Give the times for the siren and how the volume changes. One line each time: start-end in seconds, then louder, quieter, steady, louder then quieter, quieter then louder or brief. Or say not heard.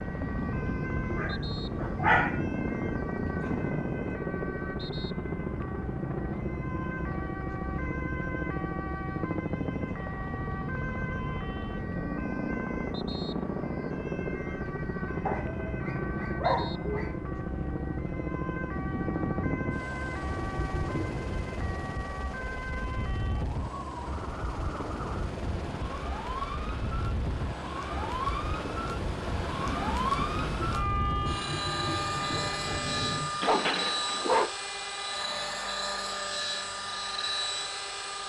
0.0-38.2 louder.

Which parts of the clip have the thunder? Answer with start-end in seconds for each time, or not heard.
0.1-4.2, 18.7-21.3, 29.6-33.5.